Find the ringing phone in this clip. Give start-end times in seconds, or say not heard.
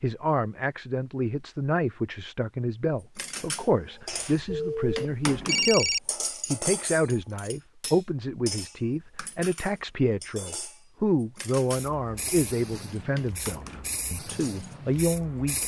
4.0-6.0.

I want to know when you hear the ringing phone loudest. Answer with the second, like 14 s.
6 s.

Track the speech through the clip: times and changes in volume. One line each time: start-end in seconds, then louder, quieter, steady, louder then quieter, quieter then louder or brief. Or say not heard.
0.0-15.6 steady.